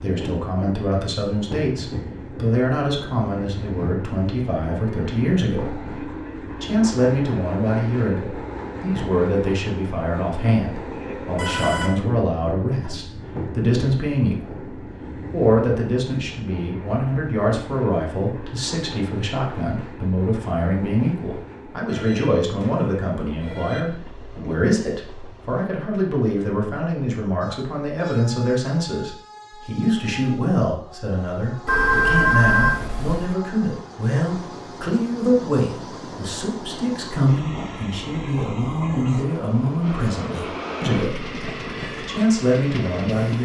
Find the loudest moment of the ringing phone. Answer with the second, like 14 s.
32 s.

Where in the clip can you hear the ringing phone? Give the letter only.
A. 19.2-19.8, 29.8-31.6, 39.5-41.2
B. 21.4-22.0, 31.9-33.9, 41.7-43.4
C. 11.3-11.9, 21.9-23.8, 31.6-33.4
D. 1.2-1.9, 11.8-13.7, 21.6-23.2
C.